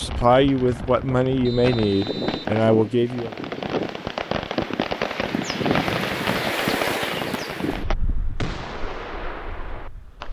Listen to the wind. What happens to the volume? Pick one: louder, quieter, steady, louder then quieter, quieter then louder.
louder then quieter.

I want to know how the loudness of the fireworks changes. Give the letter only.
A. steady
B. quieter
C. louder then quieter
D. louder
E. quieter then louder
C.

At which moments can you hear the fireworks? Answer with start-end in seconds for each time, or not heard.
0.0-10.2.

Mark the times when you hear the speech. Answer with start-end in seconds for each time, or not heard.
0.0-3.4.